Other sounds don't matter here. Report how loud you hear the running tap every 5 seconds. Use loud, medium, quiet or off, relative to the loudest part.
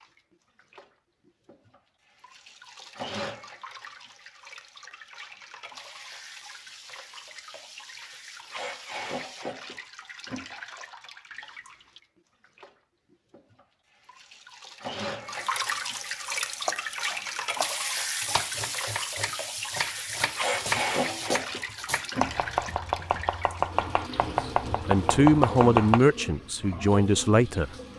medium, medium, medium, loud, loud, medium.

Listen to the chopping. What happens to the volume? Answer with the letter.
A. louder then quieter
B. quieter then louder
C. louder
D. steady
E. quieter
C.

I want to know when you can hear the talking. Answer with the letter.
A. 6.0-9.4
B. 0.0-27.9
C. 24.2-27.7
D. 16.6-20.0
C.